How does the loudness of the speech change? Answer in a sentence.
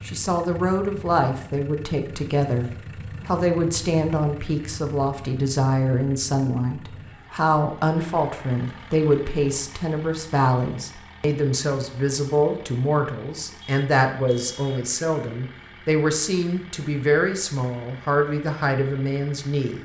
The volume of the speech stays about the same.